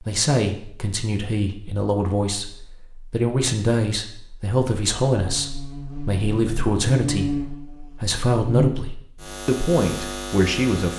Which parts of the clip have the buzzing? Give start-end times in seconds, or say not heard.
5.2-10.9.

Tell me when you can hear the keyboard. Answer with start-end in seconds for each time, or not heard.
not heard.